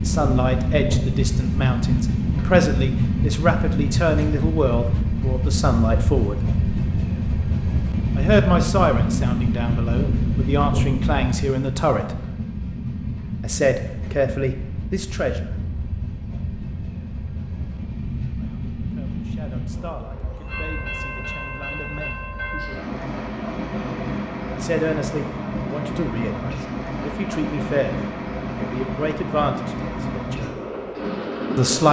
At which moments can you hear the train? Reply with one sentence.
The train can be heard from 0.0 to 31.8 s.